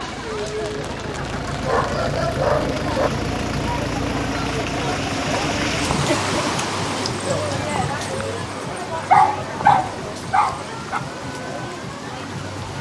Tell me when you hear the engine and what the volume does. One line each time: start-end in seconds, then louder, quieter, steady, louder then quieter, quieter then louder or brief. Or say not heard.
0.0-12.7 quieter.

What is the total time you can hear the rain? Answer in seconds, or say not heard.
13 s.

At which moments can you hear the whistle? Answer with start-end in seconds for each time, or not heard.
not heard.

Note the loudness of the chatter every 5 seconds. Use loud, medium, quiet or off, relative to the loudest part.
loud, loud, medium.